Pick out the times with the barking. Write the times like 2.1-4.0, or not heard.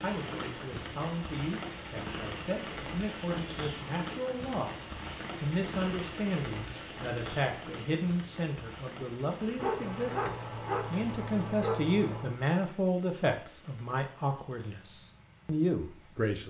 9.6-12.4.